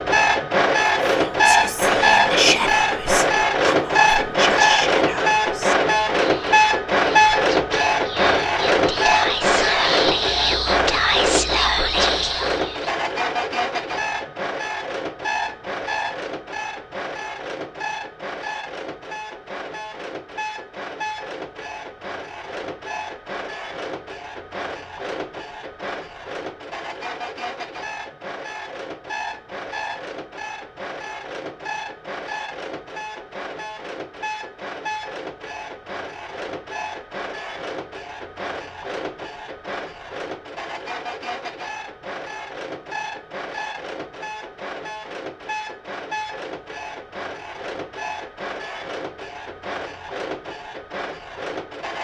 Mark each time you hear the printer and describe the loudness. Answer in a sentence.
You can hear the printer from 0.0 to 51.9 s, getting quieter.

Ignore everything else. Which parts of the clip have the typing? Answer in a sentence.
You can't hear the typing here.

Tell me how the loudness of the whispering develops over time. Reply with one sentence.
The volume of the whispering goes down, then up.